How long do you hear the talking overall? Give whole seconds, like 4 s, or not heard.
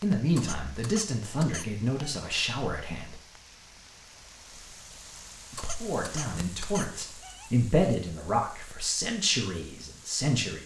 8 s.